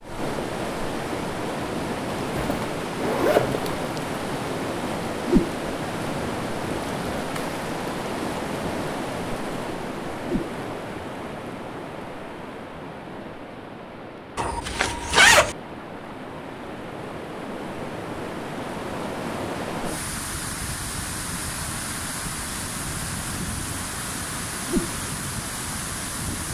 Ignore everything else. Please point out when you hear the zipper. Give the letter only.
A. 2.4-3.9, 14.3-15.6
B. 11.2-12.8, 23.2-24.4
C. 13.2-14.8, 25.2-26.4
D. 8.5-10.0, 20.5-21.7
A.